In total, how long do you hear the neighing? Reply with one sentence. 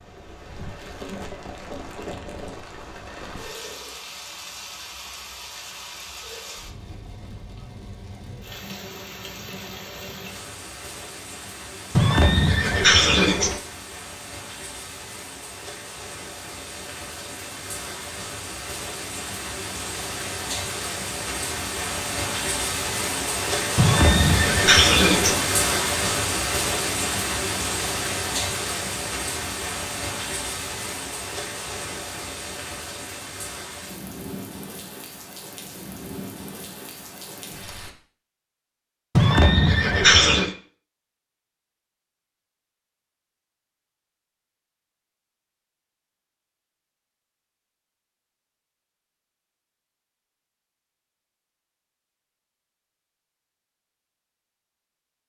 The neighing can be heard for 5 seconds in total.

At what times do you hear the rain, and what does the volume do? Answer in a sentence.
The rain can be heard from 0.0 to 38.0 s, getting louder then quieter.